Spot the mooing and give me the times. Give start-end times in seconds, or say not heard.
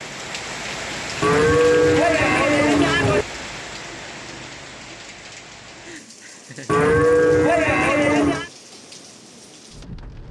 1.2-3.2, 6.7-8.5.